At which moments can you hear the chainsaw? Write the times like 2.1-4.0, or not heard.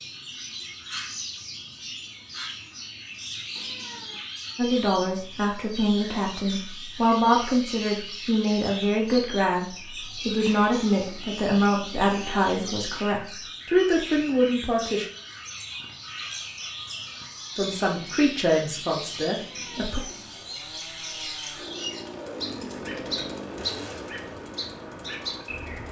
15.8-25.8.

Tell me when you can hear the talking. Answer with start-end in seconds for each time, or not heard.
4.5-15.1, 17.6-20.0.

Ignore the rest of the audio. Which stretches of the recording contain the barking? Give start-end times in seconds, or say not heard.
not heard.